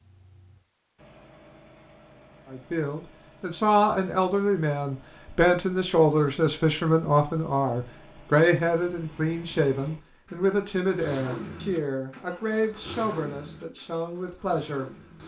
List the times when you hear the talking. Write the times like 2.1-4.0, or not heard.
2.5-15.2.